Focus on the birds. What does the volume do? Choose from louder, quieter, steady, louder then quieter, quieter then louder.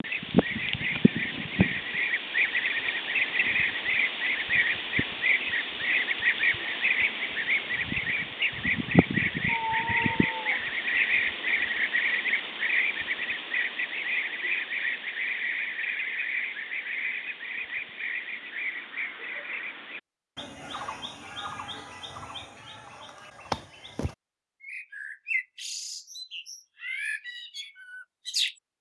quieter.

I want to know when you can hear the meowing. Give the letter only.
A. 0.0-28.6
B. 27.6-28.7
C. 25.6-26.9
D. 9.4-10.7
D.